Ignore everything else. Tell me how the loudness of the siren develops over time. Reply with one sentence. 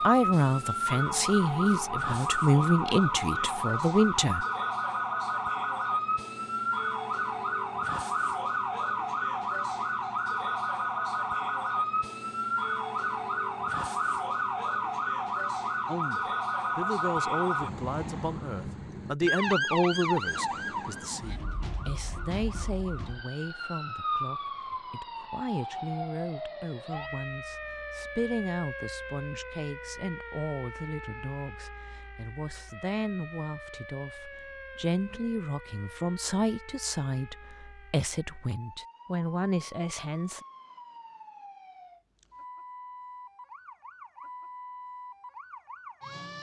The volume of the siren goes down.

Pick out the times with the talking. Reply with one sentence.
The talking can be heard from 0.1 to 4.5 s and from 15.8 to 40.4 s.